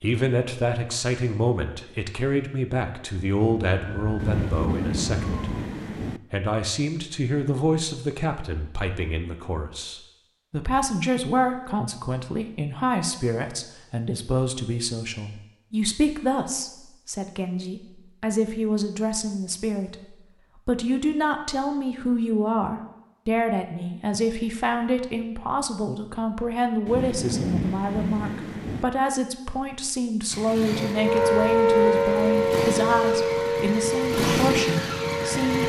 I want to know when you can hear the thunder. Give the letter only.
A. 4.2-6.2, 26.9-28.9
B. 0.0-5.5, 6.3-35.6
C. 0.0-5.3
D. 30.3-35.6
A.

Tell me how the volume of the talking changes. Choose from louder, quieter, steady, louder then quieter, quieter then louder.
steady.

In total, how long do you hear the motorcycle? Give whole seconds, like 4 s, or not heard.
5 s.